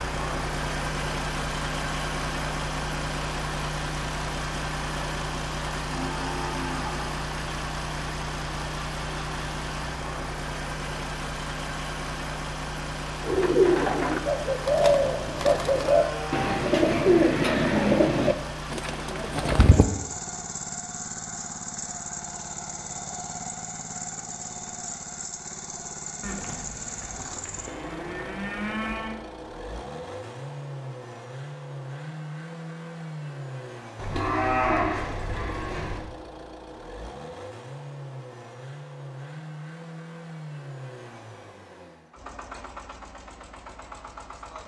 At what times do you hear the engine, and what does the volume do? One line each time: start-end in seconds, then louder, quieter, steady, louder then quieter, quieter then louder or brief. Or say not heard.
0.0-44.6 quieter.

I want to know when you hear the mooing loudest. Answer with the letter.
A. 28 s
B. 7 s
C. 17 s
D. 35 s
D.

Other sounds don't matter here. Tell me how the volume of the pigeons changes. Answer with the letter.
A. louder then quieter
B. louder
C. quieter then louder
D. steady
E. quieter
E.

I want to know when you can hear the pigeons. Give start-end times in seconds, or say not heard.
13.2-19.9.